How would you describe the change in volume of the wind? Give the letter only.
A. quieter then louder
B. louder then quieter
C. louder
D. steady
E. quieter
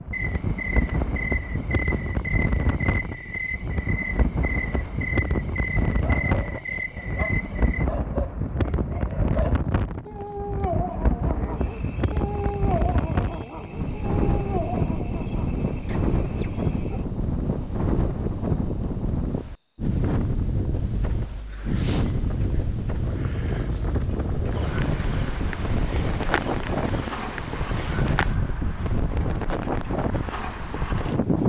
D.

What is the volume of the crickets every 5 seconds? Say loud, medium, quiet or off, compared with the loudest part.
loud, loud, loud, loud, medium, loud, medium.